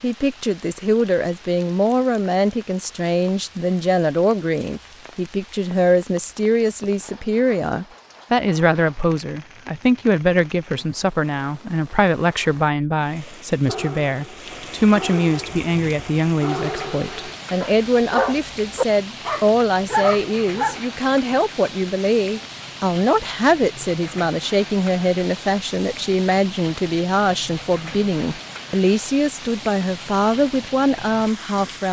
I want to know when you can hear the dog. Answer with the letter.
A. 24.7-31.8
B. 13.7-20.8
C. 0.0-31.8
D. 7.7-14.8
B.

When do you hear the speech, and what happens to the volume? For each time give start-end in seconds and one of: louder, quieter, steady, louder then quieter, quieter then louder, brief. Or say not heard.
0.0-31.8 steady.